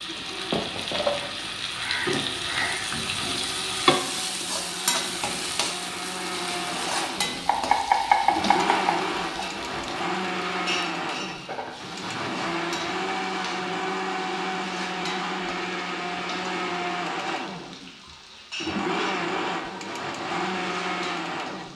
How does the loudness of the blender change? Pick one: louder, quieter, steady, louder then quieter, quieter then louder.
louder.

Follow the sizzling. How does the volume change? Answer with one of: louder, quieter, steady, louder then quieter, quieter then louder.
quieter.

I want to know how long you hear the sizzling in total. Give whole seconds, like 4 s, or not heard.
22 s.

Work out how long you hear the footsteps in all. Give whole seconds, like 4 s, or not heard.
not heard.